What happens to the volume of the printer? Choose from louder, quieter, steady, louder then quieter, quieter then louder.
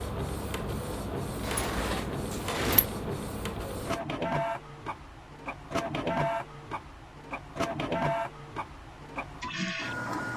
steady.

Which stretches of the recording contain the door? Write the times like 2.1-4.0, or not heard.
1.4-2.9.